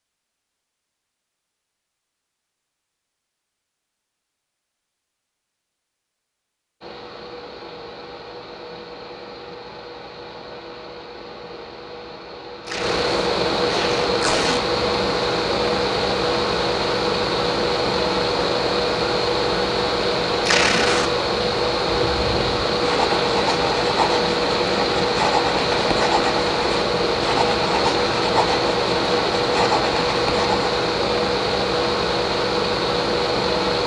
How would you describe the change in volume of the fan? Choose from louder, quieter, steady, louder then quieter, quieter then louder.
louder.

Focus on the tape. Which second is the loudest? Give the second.
21 s.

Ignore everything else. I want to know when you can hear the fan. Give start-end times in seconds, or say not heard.
6.8-33.8.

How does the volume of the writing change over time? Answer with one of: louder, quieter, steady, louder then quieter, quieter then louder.
steady.